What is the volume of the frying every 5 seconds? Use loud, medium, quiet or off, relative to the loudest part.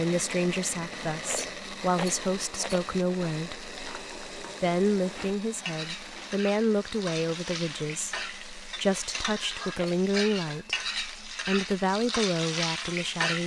quiet, medium, loud.